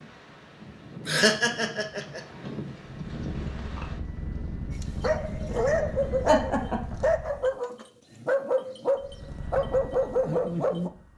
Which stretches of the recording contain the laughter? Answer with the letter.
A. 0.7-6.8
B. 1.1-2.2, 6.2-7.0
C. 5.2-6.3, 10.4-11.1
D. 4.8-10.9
B.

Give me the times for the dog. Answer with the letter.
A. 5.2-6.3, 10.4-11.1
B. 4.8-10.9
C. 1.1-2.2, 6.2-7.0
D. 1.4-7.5
B.